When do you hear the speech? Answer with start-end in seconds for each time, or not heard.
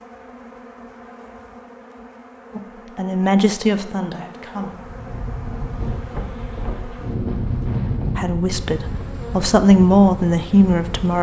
2.7-4.7, 8.2-11.1.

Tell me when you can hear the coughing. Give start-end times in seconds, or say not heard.
not heard.